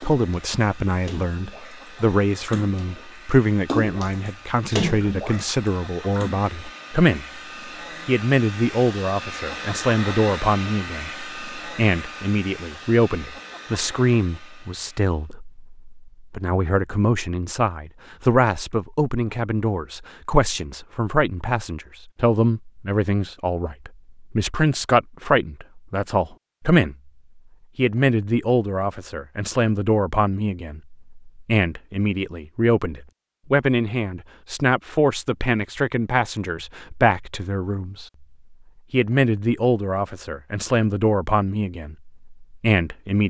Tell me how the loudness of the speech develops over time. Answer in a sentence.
The volume of the speech stays about the same.